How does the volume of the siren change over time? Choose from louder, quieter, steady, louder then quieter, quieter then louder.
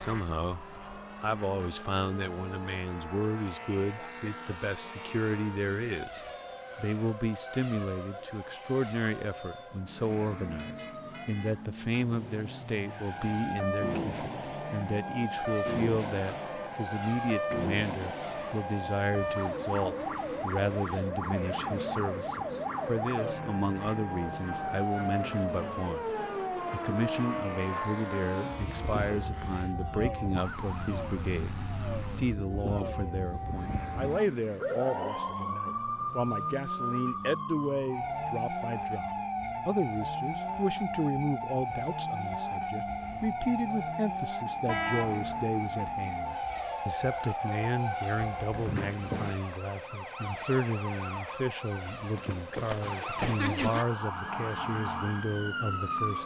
louder.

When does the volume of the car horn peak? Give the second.
45 s.